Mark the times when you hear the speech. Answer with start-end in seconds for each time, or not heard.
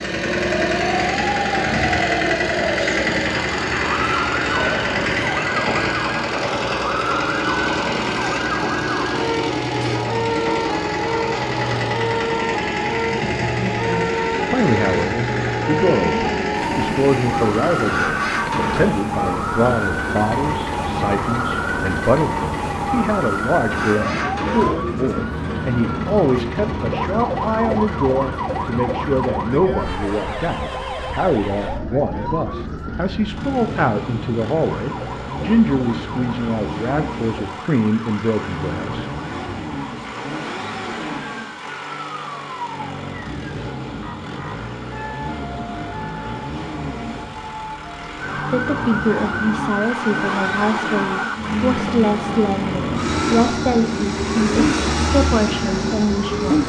13.4-39.0, 48.4-56.6.